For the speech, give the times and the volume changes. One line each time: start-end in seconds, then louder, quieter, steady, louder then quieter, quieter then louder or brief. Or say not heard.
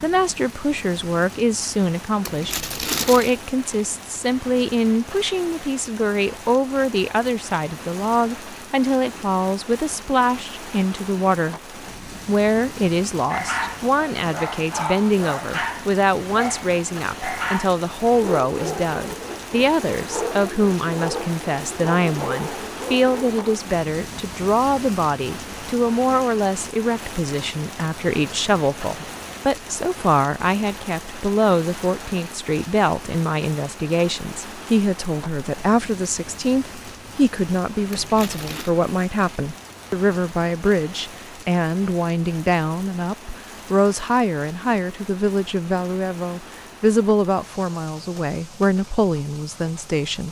0.0-50.2 steady.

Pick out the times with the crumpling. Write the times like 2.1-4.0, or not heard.
2.2-3.4, 37.9-38.8.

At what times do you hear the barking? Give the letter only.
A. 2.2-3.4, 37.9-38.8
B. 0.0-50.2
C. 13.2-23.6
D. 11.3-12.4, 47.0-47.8
C.